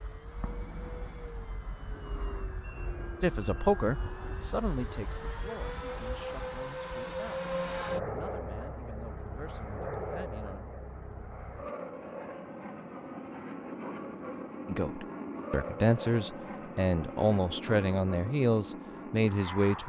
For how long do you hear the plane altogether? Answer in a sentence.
The plane can be heard for 20 seconds in total.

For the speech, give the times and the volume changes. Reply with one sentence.
You can hear the speech from 3.2 to 10.7 s, getting quieter; and from 14.7 to 19.8 s, at a steady volume.